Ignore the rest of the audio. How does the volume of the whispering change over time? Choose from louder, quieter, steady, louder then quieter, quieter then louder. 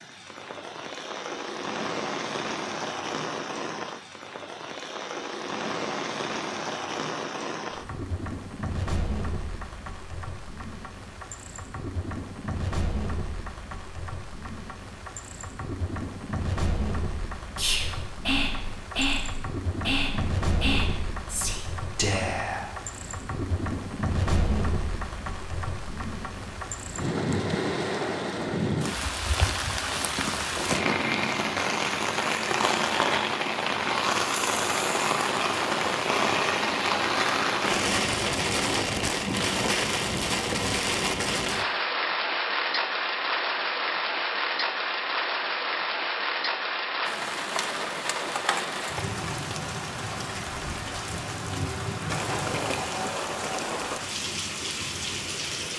steady.